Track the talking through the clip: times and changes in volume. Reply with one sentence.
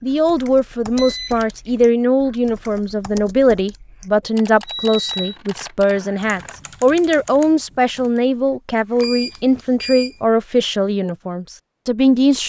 You can hear the talking from 0.0 to 12.4 s, at a steady volume.